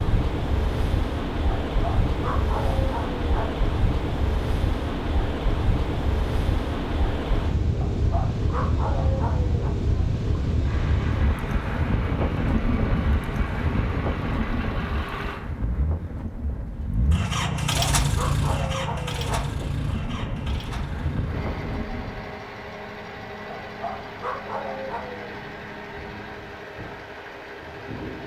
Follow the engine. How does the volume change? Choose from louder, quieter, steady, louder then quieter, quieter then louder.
louder then quieter.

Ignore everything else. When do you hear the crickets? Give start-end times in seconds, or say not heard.
not heard.